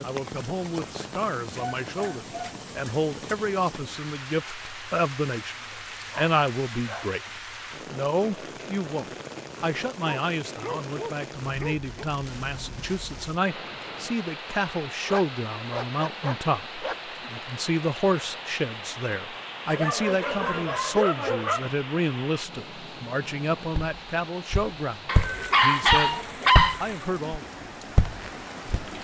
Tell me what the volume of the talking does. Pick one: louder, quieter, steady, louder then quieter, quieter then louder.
steady.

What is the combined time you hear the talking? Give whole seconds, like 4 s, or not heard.
27 s.